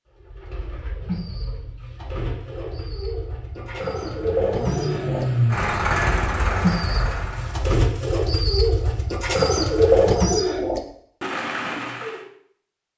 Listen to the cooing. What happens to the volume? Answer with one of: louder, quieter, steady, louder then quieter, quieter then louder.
louder.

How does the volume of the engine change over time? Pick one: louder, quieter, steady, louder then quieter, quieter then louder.
louder then quieter.